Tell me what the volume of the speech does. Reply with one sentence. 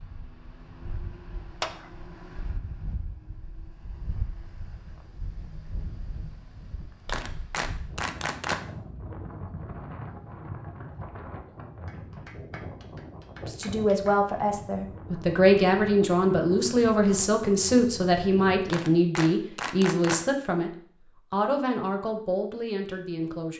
The loudness of the speech goes down.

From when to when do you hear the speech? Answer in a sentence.
The speech can be heard from 13.4 to 23.5 s.